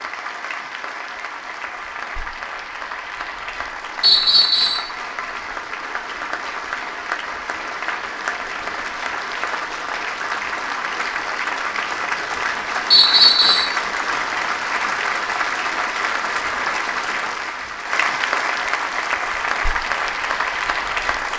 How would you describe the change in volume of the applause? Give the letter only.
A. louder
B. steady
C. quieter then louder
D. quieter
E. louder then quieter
A.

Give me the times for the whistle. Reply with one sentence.
You can hear the whistle from 4.0 to 4.8 s and from 12.9 to 13.8 s.